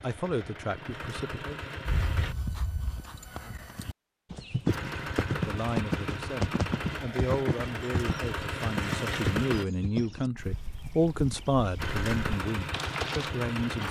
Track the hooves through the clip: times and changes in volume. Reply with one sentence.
You can hear the hooves from 1.9 to 13.3 s, getting louder then quieter.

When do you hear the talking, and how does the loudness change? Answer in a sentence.
The talking can be heard briefly from 0.0 to 1.6 s; and from 5.2 to 13.8 s, getting louder then quieter.